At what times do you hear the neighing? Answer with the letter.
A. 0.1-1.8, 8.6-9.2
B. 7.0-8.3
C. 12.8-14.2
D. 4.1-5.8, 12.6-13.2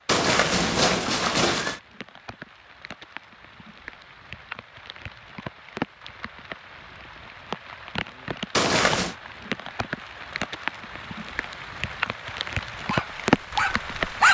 A.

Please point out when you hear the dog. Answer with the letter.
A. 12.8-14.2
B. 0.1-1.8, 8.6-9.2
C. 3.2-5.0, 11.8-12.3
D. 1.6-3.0
A.